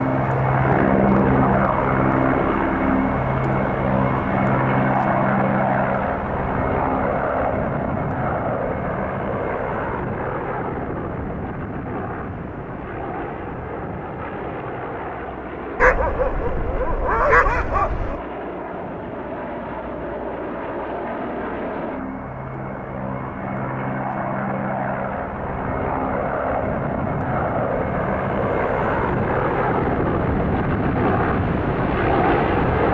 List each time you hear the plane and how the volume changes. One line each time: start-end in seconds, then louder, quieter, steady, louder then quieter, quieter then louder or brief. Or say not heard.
0.0-32.8 quieter then louder.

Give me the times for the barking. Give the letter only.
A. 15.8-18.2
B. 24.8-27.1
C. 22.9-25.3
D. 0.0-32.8
A.